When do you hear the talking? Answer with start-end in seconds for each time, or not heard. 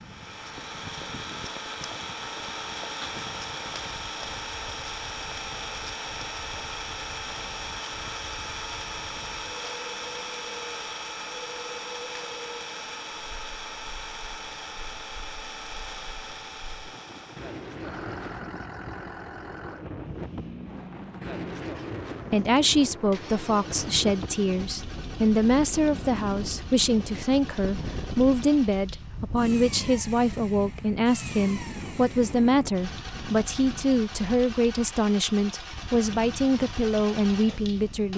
22.3-38.1.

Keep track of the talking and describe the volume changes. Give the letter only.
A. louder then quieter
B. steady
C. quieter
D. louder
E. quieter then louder
B.